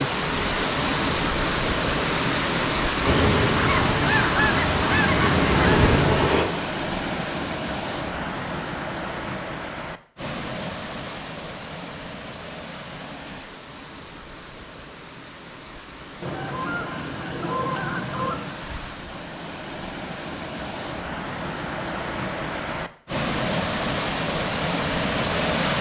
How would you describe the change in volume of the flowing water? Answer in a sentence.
The loudness of the flowing water goes down, then up.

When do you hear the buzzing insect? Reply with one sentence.
You can hear the buzzing insect from 3.0 to 6.5 s.